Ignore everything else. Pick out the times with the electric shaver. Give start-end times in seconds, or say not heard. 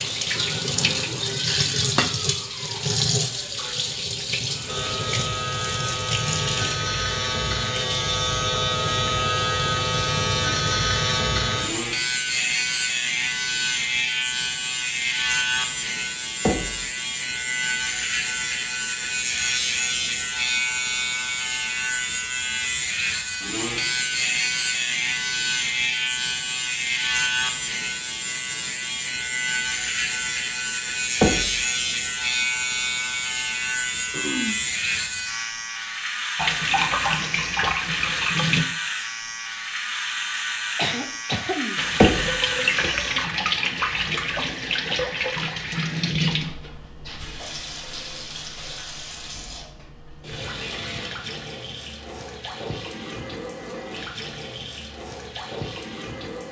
4.7-43.2.